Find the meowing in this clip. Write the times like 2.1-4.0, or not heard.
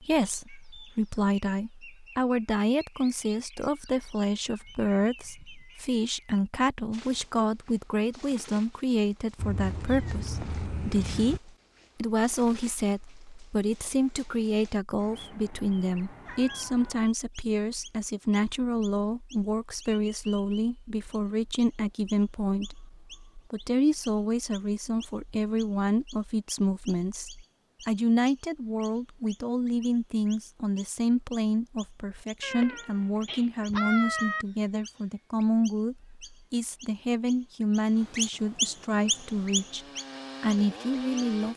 9.3-11.4, 14.9-17.0, 32.4-34.5.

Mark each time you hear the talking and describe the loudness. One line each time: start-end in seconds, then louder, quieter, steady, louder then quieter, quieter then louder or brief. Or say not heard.
0.0-41.5 steady.